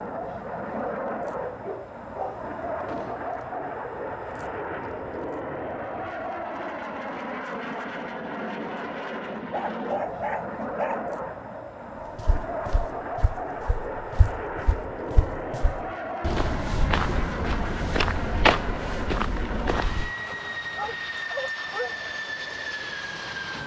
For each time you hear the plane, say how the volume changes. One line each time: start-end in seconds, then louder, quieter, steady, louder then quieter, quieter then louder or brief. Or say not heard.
0.0-23.6 steady.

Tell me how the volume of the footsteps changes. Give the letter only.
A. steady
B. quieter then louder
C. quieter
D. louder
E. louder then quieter
D.